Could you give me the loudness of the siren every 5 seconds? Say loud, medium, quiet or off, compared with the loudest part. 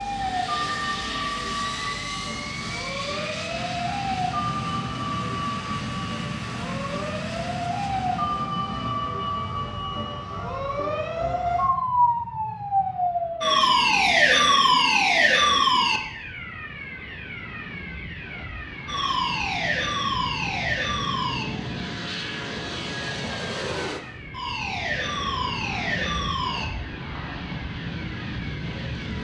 medium, medium, loud, loud, medium, medium.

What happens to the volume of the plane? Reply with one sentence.
The volume of the plane goes down, then up.